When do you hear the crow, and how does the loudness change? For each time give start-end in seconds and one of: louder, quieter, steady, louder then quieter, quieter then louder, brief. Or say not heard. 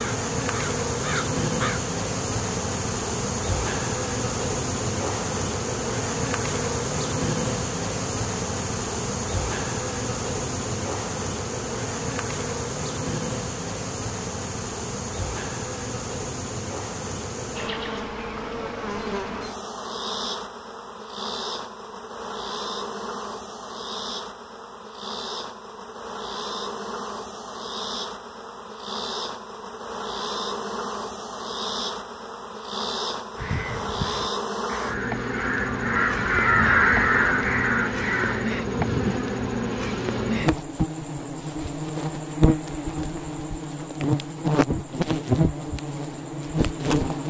0.0-1.8 brief
33.4-39.2 louder then quieter.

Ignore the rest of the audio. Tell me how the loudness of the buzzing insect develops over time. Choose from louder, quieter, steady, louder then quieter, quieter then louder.
quieter then louder.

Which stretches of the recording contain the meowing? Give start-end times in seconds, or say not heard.
not heard.